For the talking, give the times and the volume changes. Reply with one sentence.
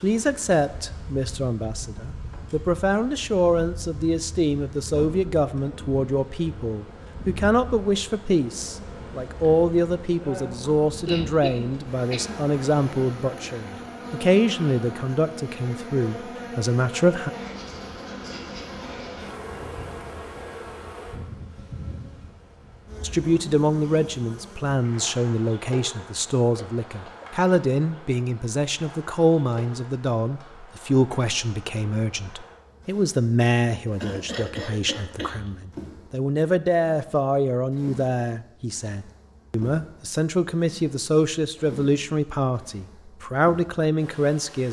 You can hear the talking from 0.0 to 17.3 s, at a steady volume; and from 23.0 to 44.6 s, at a steady volume.